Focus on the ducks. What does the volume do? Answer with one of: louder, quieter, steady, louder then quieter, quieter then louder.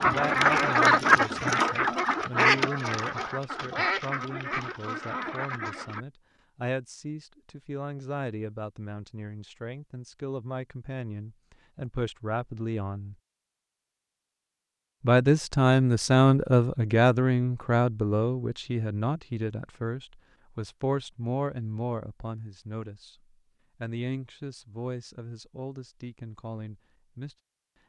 quieter.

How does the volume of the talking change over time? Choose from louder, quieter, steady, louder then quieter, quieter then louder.
louder then quieter.